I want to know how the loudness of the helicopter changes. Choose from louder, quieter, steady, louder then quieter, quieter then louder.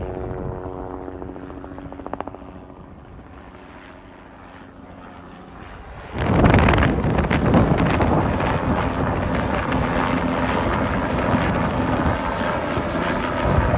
quieter then louder.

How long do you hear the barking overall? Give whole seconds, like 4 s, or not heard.
not heard.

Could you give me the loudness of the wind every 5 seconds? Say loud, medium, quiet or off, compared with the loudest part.
off, loud, medium.